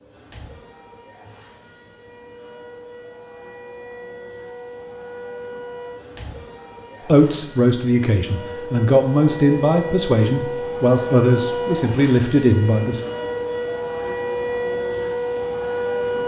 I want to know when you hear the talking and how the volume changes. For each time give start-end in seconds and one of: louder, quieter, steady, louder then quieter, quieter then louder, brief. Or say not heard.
7.0-13.0 steady.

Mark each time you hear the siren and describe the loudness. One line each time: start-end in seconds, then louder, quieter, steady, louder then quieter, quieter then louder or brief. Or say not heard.
0.0-16.2 louder.